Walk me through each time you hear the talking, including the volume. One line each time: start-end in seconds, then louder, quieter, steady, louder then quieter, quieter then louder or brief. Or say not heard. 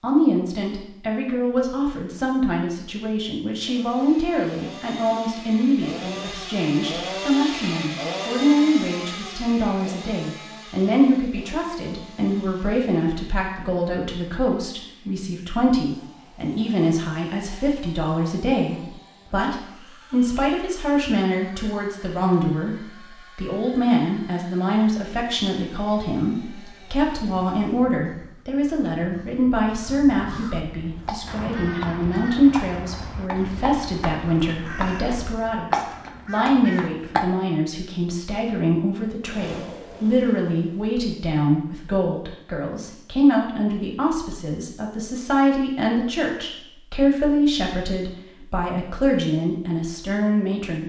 0.0-50.8 steady.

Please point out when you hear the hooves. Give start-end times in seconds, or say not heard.
30.8-37.2.